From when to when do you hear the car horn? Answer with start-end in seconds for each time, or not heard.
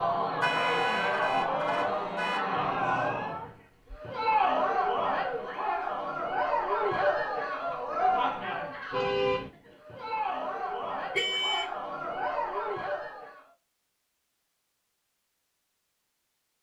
0.4-2.4, 8.9-9.5, 11.1-11.7.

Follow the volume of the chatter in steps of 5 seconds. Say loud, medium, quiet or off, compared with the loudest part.
loud, loud, medium, off.